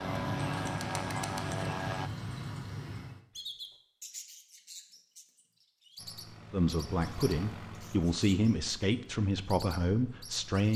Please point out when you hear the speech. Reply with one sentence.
The speech can be heard from 6.5 to 10.7 s.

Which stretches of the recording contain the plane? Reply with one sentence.
You can hear the plane from 0.0 to 2.1 s and from 6.0 to 10.7 s.